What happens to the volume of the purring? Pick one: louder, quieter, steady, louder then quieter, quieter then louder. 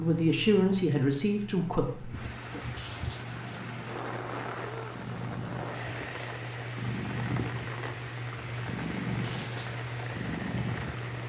louder.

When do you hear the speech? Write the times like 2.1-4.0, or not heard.
0.0-2.1.